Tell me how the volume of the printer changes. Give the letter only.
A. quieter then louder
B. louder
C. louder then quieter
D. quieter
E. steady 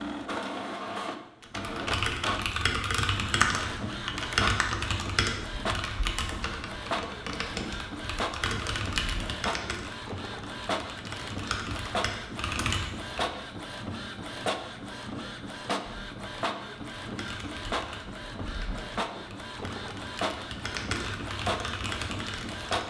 E.